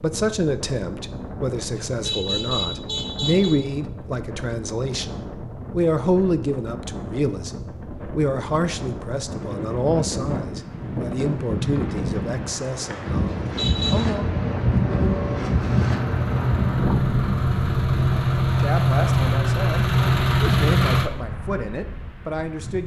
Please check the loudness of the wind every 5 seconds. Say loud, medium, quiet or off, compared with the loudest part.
medium, medium, loud, loud, quiet.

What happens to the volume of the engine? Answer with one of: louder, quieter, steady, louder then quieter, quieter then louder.
louder.